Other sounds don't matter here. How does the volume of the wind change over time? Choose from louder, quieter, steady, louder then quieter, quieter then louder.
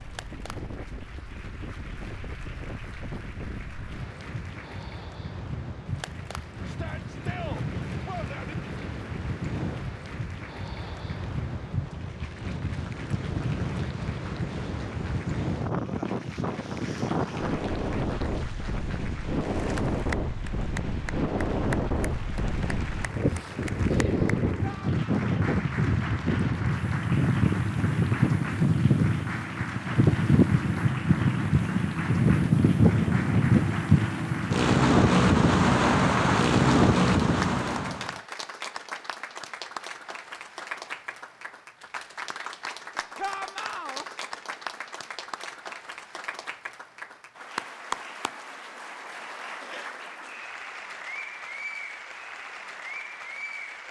louder.